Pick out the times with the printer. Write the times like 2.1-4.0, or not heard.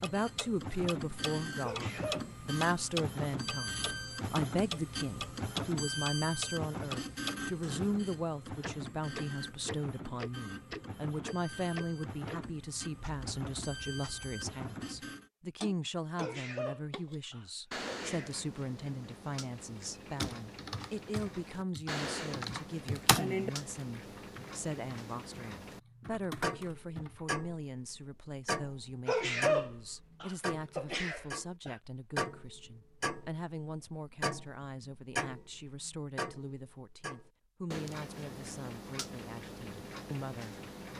0.0-15.3.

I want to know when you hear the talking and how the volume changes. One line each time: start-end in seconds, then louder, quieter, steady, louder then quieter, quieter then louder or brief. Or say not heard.
0.0-40.9 quieter.